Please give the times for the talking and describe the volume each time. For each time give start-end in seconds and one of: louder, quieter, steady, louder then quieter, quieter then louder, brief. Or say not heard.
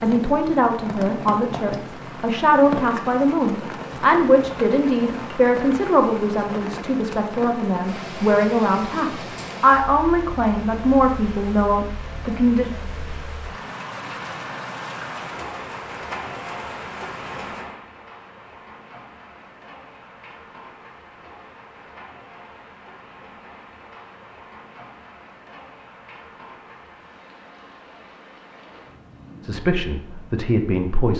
0.0-12.7 steady
29.4-31.1 brief.